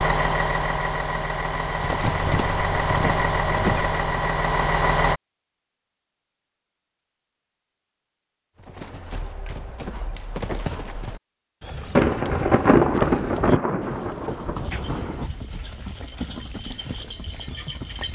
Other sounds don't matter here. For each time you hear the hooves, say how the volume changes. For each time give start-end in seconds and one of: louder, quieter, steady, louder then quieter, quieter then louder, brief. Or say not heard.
1.8-4.0 brief
8.6-18.1 steady.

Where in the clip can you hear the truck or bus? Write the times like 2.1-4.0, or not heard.
0.0-5.2.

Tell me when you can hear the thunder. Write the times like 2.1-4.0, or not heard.
11.9-15.2.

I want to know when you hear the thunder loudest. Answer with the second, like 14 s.
13 s.